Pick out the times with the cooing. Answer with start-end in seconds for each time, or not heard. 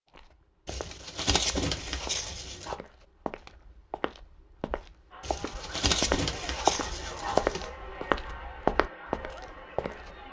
0.7-2.8, 5.2-7.7.